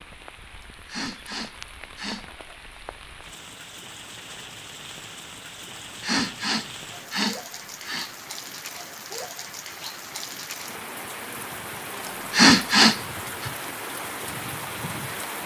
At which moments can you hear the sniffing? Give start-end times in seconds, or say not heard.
0.6-2.2, 5.8-8.1, 12.1-13.5.